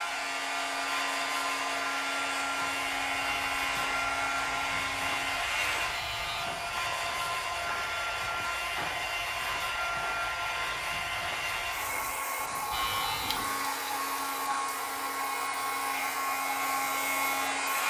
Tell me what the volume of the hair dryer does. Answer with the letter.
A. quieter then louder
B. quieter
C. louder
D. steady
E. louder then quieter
D.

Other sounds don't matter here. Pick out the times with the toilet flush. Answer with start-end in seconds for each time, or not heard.
13.2-15.1.